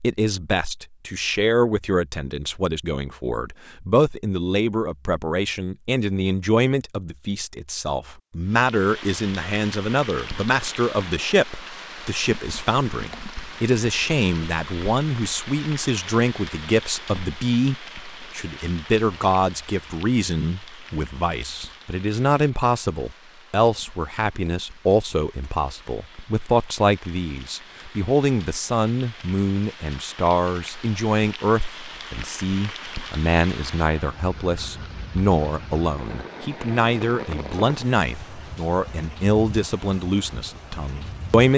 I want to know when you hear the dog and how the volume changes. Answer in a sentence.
You can't hear the dog here.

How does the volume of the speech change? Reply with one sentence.
The loudness of the speech stays about the same.